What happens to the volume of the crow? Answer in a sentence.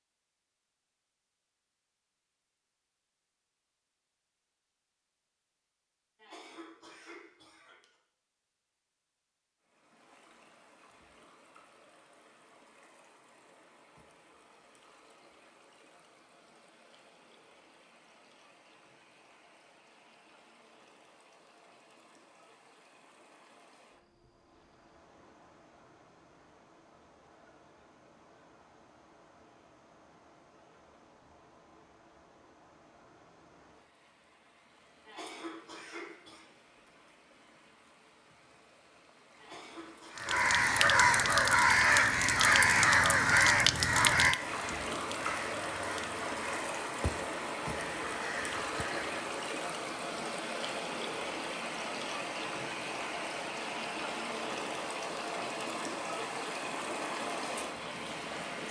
The loudness of the crow goes down.